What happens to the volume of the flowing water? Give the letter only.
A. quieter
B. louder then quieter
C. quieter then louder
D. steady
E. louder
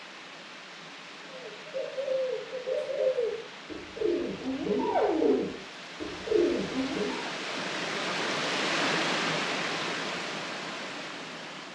E.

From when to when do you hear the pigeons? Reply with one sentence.
You can hear the pigeons from 1.3 to 7.3 s.